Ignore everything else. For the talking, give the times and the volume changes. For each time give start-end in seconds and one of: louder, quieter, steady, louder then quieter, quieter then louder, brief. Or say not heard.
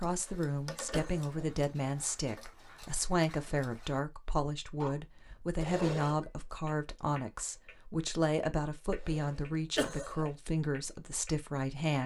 0.0-12.0 steady.